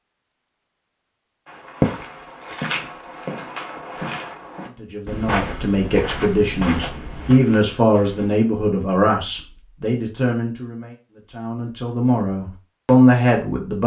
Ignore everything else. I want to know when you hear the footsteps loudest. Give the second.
2 s.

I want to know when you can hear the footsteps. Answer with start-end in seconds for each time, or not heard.
1.4-8.4.